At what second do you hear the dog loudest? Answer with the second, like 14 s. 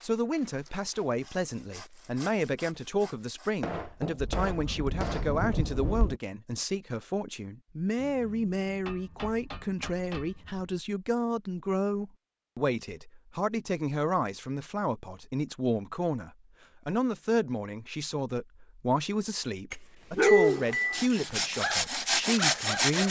20 s.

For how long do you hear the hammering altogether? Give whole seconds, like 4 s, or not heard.
5 s.